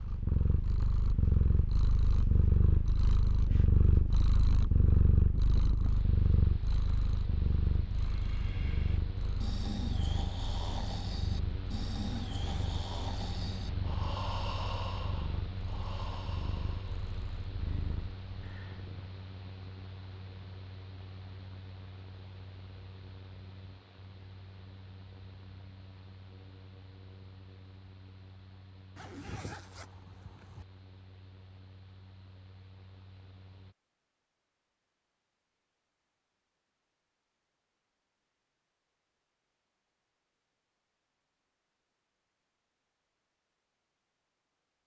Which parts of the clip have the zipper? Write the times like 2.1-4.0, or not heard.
12.3-12.8, 28.9-30.6.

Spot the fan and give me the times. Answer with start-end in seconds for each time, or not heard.
0.0-33.8.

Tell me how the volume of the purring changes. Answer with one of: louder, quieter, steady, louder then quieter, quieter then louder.
quieter.